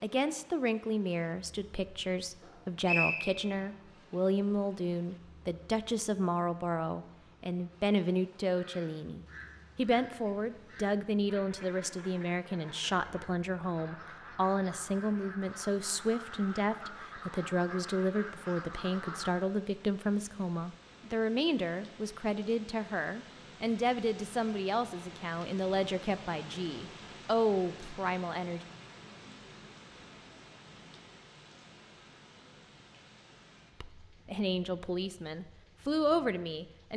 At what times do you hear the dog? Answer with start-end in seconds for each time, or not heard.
not heard.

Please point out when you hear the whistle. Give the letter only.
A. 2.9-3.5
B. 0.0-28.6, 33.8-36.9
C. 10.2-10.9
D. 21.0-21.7
A.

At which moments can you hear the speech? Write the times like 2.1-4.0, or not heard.
0.0-28.6, 33.8-36.9.